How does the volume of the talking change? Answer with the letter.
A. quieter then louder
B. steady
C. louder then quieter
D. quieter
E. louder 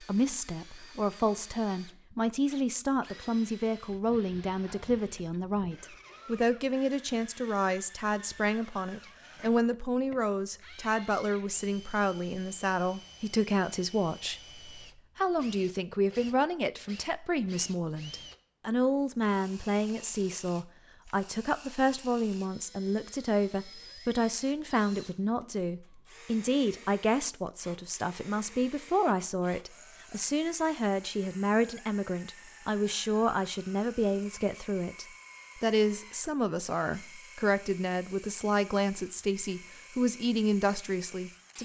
B.